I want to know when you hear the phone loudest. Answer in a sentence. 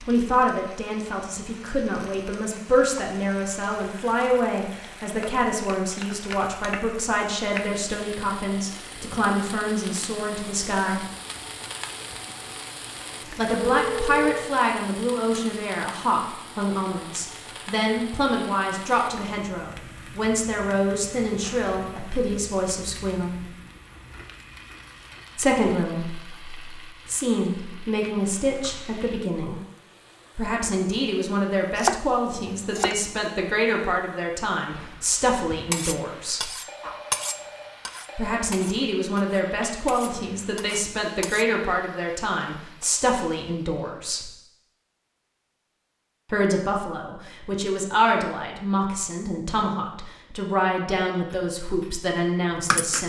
The loudest moment of the phone is at 14 seconds.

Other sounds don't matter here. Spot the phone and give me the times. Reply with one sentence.
The phone can be heard from 13.5 to 14.3 s and from 36.6 to 38.4 s.